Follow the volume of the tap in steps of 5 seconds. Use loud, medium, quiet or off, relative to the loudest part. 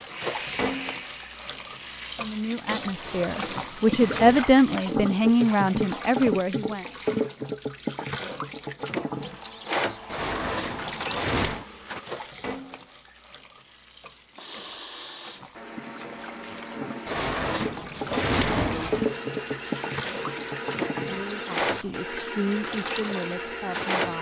loud, loud, medium, loud, loud.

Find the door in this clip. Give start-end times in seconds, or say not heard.
3.0-4.5, 10.1-11.7, 17.1-19.0.